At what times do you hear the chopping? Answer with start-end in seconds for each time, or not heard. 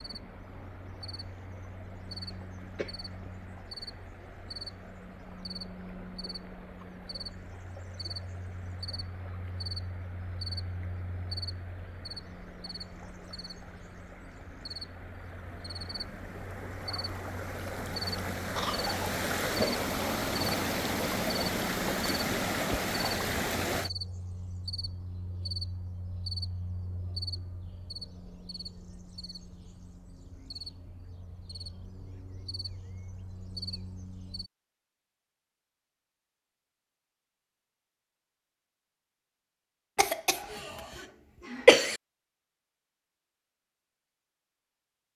not heard.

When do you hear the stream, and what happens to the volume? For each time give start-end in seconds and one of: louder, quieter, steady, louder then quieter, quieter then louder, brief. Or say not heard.
0.0-23.9 louder.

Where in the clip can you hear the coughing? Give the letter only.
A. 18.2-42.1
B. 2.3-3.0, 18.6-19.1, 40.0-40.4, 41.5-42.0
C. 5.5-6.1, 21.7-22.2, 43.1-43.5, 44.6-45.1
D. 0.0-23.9
B.